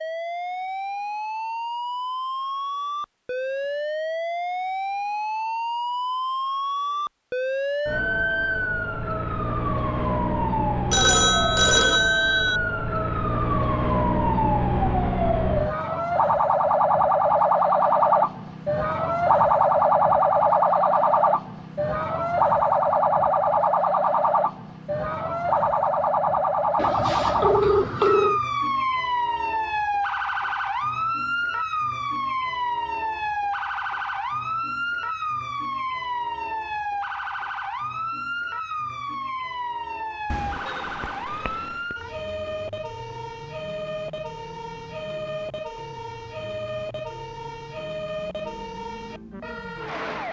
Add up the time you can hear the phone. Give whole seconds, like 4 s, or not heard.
5 s.